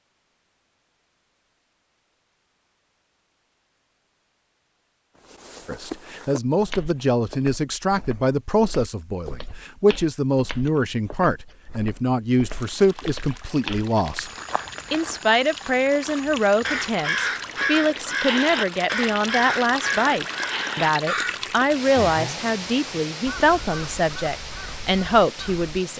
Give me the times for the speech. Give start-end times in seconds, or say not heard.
5.7-14.3, 14.9-25.9.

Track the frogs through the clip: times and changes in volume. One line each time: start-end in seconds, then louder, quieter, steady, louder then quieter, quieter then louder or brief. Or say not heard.
not heard.